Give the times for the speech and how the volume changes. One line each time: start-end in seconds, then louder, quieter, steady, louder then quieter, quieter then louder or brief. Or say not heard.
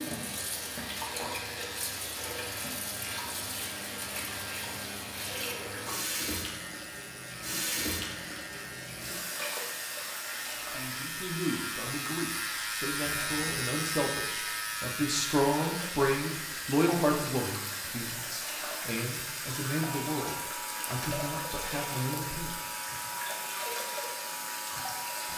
10.6-22.6 louder then quieter.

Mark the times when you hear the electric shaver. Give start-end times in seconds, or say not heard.
0.0-25.3.